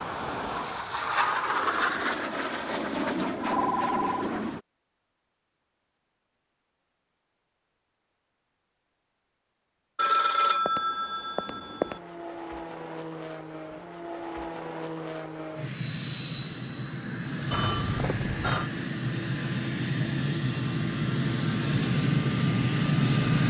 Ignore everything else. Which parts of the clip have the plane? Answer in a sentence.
The plane can be heard from 0.0 to 4.7 s and from 11.4 to 23.4 s.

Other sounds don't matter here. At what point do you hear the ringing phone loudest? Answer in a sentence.
The volume of the ringing phone peaks at 10 seconds.